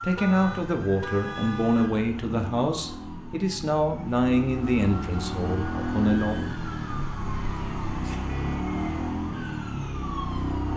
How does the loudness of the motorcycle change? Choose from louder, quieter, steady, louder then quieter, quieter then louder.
louder.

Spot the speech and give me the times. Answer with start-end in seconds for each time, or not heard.
0.0-6.5.